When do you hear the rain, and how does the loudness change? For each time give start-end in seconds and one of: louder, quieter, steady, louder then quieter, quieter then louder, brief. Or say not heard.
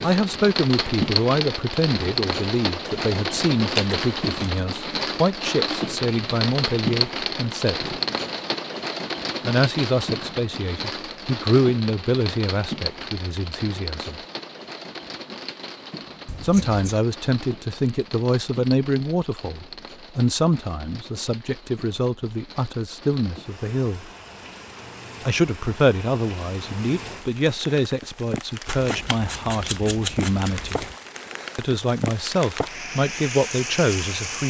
0.0-34.4 quieter then louder.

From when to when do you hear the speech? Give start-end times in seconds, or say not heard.
0.0-8.0, 9.4-14.2, 16.4-24.1, 25.2-30.9, 31.6-34.4.